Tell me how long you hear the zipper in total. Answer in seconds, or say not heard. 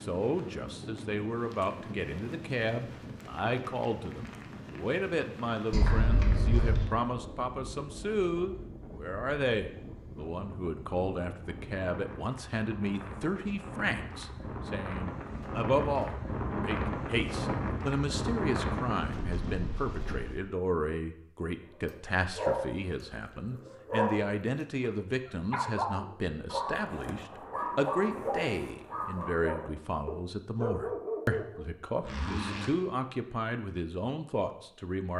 2 s.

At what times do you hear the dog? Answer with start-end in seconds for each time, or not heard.
21.9-31.6.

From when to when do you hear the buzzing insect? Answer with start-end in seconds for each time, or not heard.
not heard.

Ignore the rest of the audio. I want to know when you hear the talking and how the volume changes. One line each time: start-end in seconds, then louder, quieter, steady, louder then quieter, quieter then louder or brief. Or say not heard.
0.0-35.1 steady.